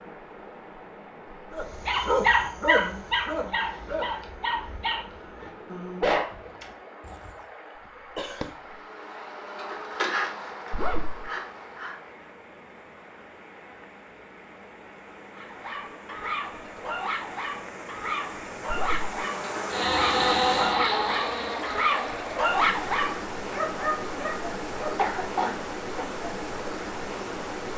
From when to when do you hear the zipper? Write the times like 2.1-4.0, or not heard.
10.7-11.3, 18.6-19.1.